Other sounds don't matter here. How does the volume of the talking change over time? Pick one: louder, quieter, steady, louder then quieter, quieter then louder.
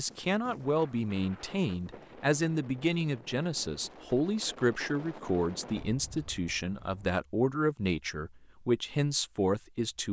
steady.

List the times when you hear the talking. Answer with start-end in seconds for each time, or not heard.
0.0-10.0.